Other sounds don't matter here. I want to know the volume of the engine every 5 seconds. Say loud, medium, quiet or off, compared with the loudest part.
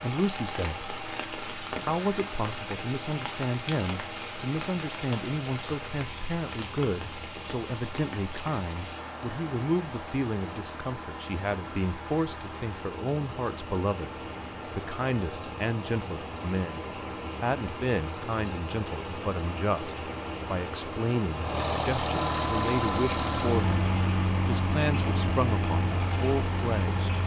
medium, quiet, quiet, quiet, loud, loud.